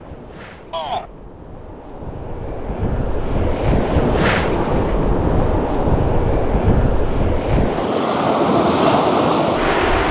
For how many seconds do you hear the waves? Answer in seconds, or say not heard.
10 s.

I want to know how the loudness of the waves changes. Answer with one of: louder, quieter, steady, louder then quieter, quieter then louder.
louder.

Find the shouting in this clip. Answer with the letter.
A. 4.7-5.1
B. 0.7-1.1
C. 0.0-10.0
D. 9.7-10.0
B.